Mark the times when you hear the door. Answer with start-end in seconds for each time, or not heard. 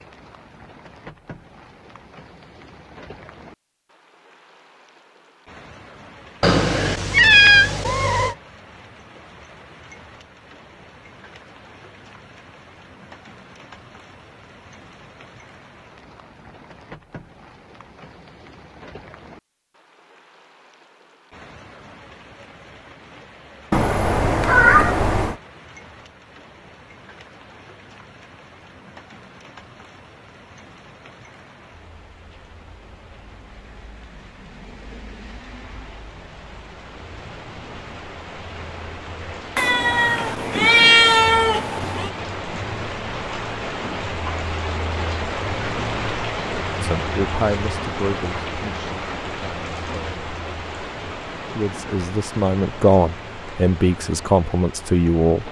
not heard.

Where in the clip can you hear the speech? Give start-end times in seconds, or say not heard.
46.8-50.3, 51.5-55.4.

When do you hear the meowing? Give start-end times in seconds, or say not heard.
6.4-8.3, 23.7-25.4, 39.5-42.1.